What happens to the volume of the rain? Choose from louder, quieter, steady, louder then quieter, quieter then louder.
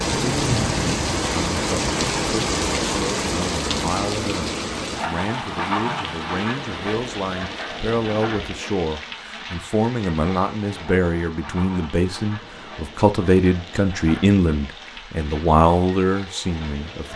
quieter.